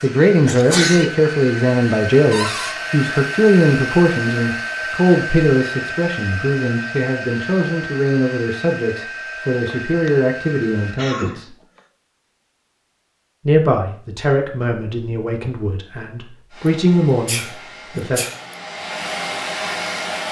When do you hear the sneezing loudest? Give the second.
1 s.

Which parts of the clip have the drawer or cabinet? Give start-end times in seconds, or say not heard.
2.3-2.8.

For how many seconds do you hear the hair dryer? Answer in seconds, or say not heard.
15 s.